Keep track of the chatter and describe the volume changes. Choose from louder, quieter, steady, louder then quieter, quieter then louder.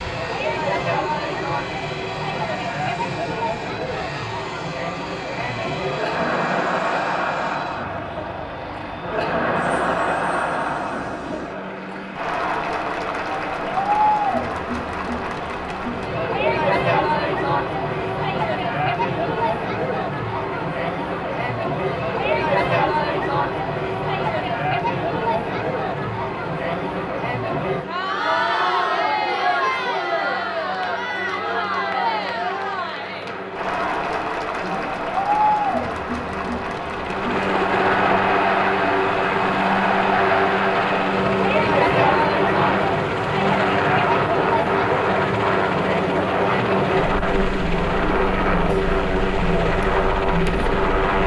steady.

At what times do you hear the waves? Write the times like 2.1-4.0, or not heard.
not heard.